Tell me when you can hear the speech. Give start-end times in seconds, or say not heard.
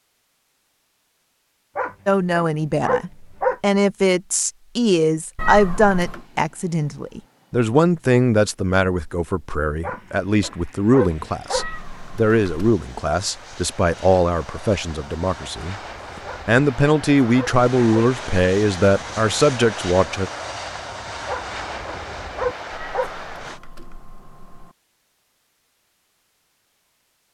2.0-20.3.